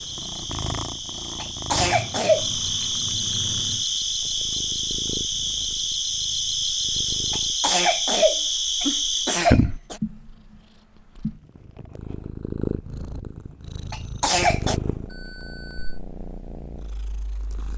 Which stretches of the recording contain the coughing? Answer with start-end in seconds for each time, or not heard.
1.4-2.5, 7.3-10.0, 13.9-14.8.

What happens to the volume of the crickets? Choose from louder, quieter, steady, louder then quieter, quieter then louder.
louder.